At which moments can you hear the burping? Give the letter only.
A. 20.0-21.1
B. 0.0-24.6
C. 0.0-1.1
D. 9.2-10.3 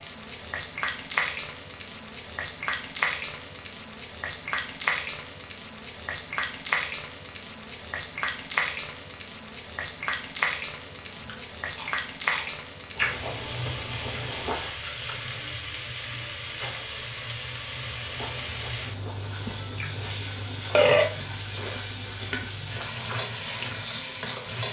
A.